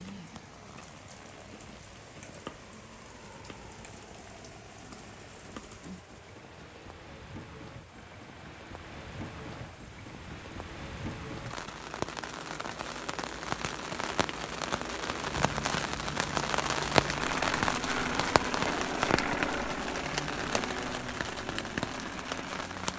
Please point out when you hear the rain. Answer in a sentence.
The rain can be heard from 0.0 to 22.9 s.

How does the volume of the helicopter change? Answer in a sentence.
The loudness of the helicopter goes up.